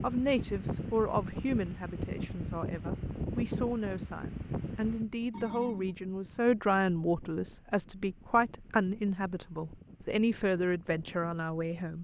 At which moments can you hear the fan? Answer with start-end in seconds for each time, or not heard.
0.0-11.9.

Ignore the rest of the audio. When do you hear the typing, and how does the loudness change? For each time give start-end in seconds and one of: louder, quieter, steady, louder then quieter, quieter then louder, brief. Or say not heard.
not heard.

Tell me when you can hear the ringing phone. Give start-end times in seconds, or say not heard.
5.3-6.0.